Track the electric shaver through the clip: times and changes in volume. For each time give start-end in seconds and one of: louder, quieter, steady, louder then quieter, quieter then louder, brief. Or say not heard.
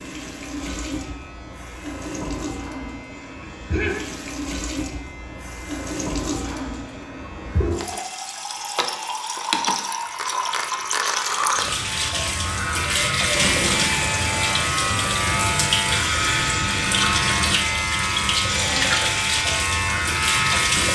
0.0-20.9 louder.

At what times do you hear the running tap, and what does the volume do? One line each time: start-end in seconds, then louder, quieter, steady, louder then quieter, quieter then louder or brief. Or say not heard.
0.0-20.9 louder.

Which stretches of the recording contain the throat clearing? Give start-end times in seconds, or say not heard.
3.4-4.0.